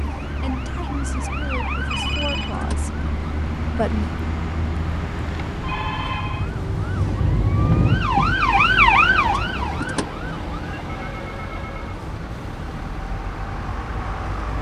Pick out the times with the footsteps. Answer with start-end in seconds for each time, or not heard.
not heard.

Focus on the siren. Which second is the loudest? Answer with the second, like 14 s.
9 s.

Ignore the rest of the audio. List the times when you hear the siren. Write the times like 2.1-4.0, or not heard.
0.0-14.5.